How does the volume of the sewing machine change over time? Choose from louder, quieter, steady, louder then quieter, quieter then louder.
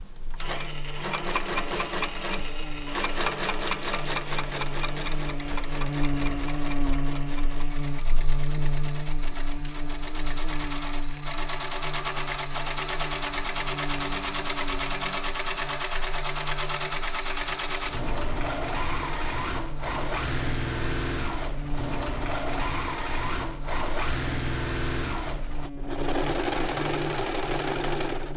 quieter then louder.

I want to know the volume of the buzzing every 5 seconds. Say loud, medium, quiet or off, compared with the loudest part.
medium, loud, medium, medium, medium, medium.